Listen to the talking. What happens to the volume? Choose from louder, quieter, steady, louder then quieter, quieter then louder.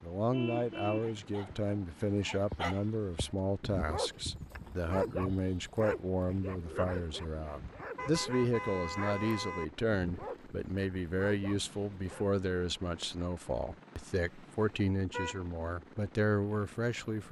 steady.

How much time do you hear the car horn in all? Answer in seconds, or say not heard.
4 s.